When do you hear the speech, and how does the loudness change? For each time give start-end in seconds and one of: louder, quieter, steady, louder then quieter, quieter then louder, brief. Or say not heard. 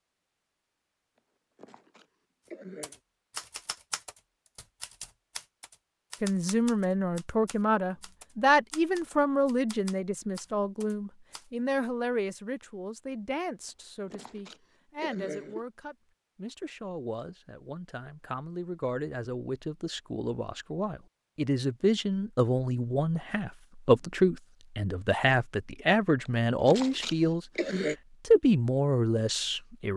6.2-29.9 quieter then louder.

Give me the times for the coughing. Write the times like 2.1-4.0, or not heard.
1.1-3.0, 13.7-15.7, 26.2-27.9.